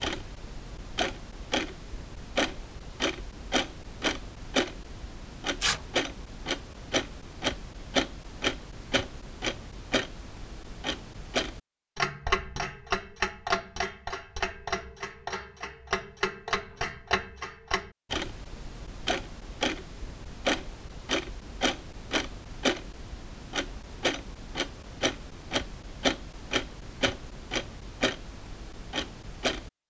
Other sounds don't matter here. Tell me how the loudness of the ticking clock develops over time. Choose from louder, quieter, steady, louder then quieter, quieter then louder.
steady.